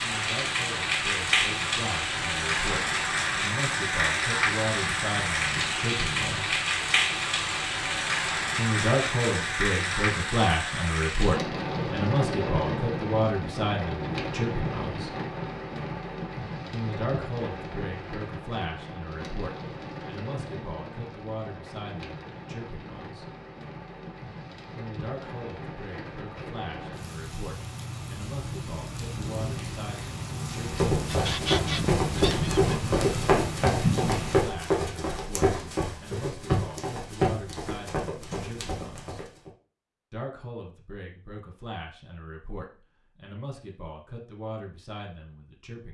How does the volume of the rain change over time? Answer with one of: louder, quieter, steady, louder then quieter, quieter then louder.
quieter then louder.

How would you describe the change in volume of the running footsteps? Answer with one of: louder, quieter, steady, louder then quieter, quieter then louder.
quieter.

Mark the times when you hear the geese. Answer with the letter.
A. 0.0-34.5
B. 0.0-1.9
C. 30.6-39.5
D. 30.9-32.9
D.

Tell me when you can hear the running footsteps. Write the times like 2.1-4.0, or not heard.
30.6-39.5.